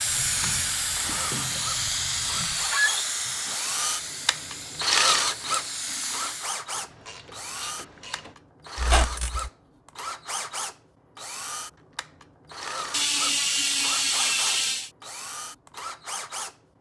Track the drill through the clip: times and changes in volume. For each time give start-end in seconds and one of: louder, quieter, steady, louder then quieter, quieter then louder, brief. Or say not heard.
0.0-16.6 louder then quieter.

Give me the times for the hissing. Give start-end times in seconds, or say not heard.
0.0-6.7.